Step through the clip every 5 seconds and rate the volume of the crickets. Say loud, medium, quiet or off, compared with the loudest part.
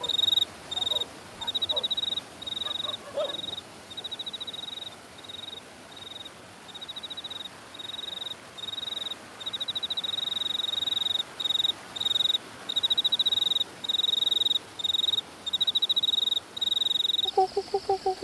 loud, medium, loud, loud.